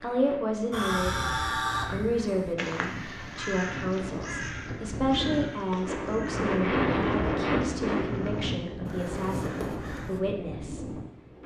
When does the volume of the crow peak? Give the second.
2 s.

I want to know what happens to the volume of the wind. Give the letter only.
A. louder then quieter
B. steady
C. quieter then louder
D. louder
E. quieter
A.